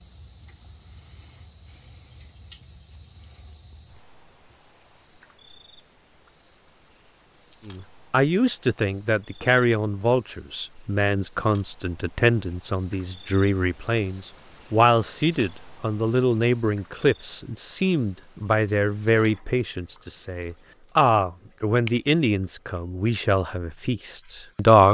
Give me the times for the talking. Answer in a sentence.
The talking can be heard from 7.7 to 24.8 s.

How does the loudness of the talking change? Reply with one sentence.
The volume of the talking stays about the same.